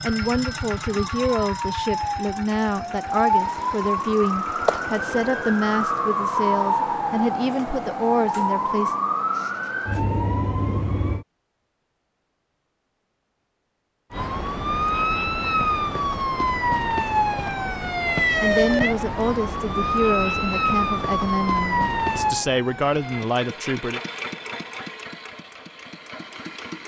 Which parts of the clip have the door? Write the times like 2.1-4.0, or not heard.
not heard.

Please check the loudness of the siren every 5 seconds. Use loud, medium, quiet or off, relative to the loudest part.
loud, loud, loud, loud, loud, off.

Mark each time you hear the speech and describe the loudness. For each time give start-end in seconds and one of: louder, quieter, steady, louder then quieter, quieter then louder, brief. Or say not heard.
0.0-8.9 steady
18.4-24.0 steady.